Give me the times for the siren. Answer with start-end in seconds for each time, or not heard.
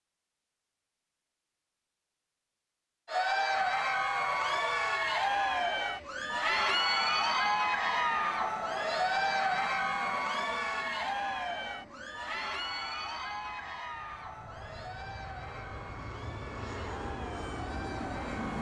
not heard.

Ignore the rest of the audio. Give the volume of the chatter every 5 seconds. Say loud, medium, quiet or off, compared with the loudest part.
loud, loud, medium, quiet.